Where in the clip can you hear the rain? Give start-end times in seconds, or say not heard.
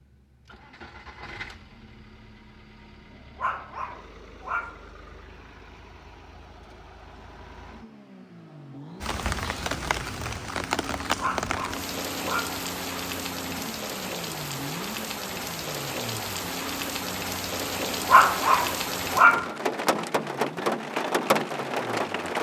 9.0-22.3.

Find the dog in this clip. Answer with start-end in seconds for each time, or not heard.
3.4-4.8, 11.2-12.6, 18.1-19.5.